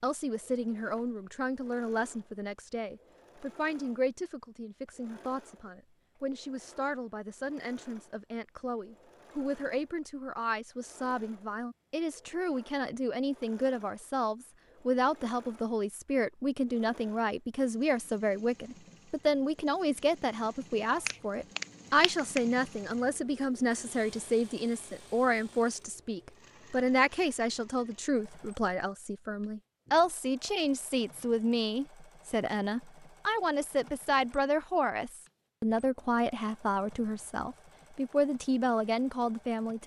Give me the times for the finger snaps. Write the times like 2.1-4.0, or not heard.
20.9-22.4.